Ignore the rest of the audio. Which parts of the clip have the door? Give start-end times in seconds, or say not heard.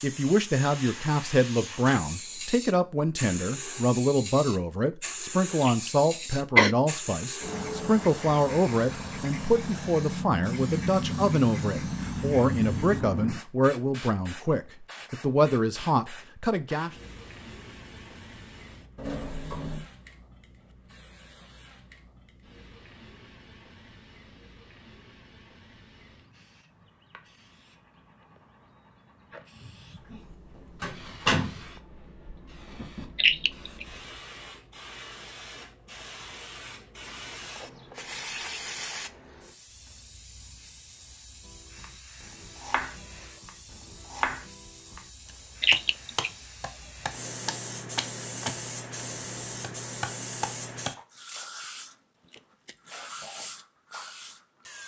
18.9-19.9, 29.6-30.1, 30.8-31.6.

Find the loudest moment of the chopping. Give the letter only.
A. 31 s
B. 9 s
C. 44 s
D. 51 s
C.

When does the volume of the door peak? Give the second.
31 s.